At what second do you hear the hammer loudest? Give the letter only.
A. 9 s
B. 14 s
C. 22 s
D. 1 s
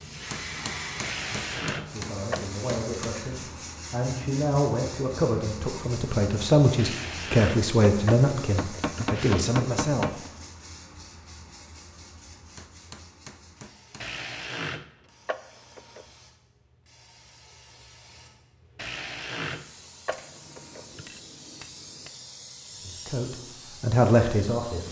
A.